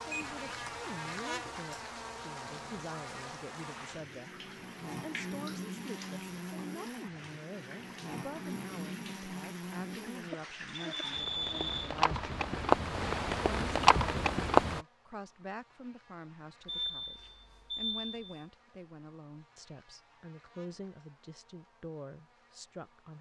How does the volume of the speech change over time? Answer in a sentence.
The loudness of the speech stays about the same.